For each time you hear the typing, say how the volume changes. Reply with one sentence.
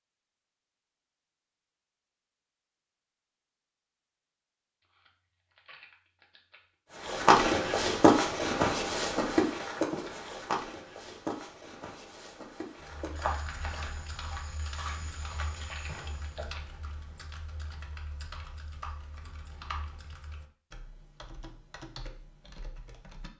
You can hear the typing from 12.8 to 23.3 s, at a steady volume.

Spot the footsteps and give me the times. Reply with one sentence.
You can hear the footsteps from 7.0 to 16.5 s.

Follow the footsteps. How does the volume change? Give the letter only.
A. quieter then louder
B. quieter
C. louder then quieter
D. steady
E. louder
B.